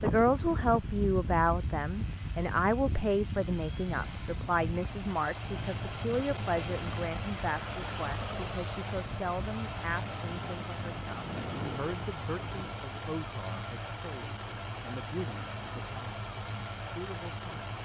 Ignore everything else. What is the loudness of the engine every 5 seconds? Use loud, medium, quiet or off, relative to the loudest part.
medium, loud, loud, loud.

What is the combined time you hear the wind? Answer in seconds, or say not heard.
13 s.